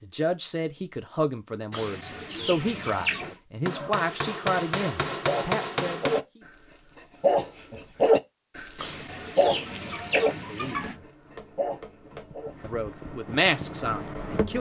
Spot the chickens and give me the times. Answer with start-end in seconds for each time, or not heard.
1.7-3.4, 8.8-10.9.